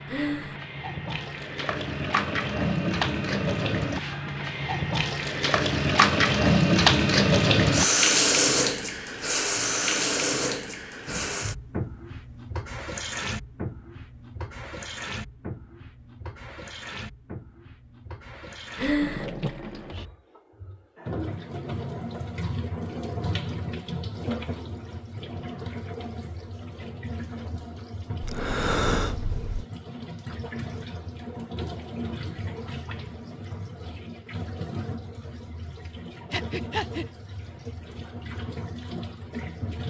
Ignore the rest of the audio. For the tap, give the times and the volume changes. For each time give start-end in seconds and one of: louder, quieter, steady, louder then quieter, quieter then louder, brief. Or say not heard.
0.0-39.8 quieter.